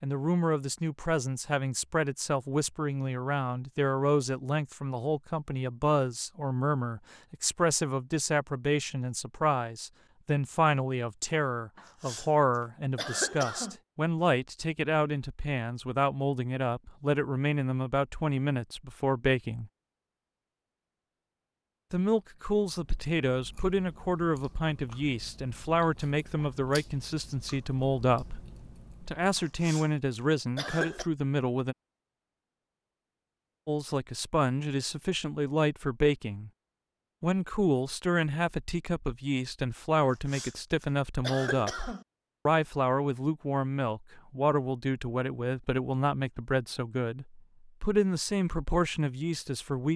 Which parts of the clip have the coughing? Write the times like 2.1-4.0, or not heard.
11.8-12.3, 12.9-13.8, 29.4-29.9, 30.6-31.1, 40.0-42.0.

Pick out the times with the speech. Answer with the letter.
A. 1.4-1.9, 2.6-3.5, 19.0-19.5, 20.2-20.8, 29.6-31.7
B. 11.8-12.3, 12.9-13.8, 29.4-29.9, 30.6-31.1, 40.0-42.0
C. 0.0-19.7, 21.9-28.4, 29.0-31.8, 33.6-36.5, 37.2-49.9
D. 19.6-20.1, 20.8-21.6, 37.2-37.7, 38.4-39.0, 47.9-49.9
C.